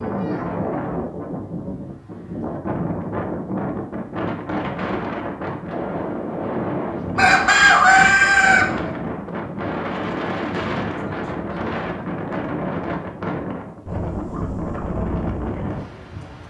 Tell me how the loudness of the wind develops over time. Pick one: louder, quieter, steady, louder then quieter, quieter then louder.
steady.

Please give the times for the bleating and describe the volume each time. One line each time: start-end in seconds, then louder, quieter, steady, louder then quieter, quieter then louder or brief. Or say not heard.
not heard.